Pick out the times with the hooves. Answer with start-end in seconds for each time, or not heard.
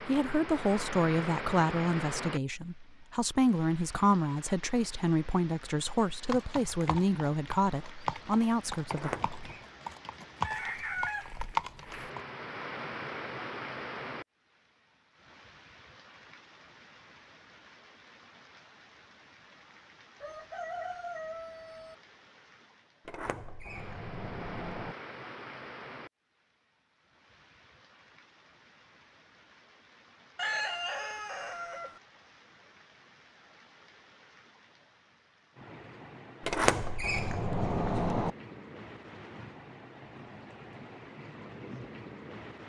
6.2-12.2.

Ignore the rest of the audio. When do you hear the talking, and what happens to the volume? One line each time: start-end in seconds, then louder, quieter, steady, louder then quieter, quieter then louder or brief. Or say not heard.
0.1-9.1 steady.